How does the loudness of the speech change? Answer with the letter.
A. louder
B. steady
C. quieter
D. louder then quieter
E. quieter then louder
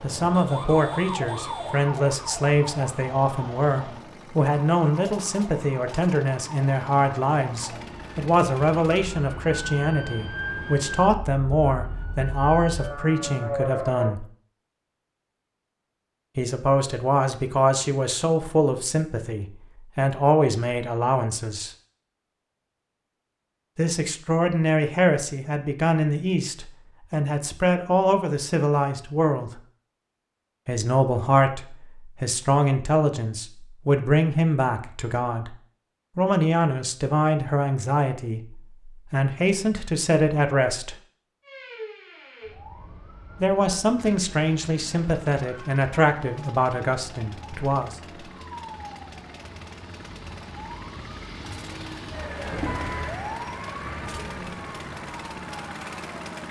B.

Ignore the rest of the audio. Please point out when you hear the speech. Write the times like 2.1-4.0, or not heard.
0.0-14.2, 16.4-21.7, 23.8-29.6, 30.6-35.5, 36.1-41.0, 43.4-48.0.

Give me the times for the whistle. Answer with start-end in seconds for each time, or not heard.
not heard.